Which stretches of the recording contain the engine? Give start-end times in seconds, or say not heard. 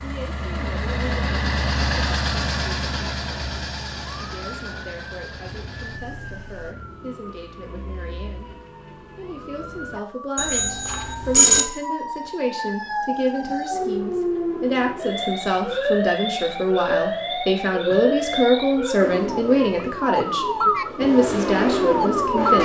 0.0-6.8, 19.0-22.6.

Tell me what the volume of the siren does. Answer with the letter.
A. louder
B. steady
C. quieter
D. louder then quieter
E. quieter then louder
A.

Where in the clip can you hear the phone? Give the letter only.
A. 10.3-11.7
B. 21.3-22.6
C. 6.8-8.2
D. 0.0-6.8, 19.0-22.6
A.